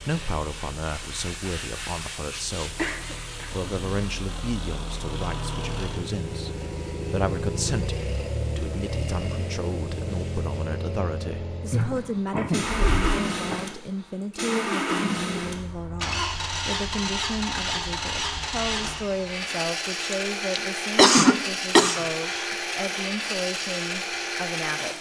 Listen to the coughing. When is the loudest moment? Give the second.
21 s.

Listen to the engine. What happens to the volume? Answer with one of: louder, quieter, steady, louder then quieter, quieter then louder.
louder.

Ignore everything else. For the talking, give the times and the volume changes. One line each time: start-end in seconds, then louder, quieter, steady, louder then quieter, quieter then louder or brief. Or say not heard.
0.0-24.9 steady.